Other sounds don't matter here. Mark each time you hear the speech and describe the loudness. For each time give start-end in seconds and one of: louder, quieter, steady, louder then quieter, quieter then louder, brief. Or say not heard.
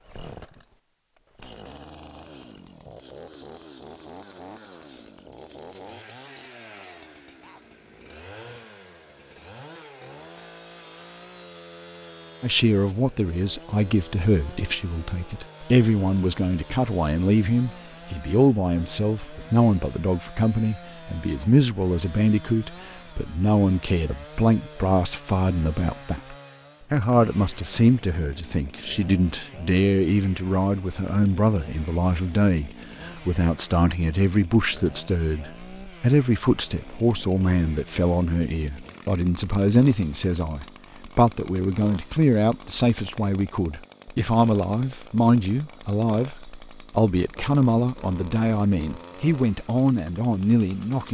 12.4-51.0 steady.